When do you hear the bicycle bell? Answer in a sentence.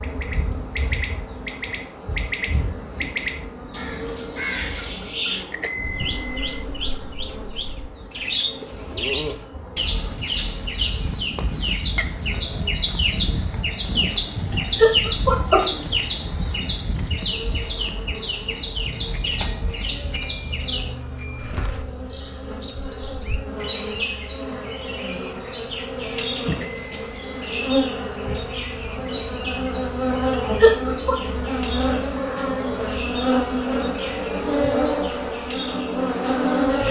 The bicycle bell can be heard from 5.5 to 6.6 s, from 18.9 to 21.6 s and from 26.5 to 27.6 s.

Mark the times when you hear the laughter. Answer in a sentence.
The laughter can be heard from 14.5 to 15.7 s and from 30.6 to 31.1 s.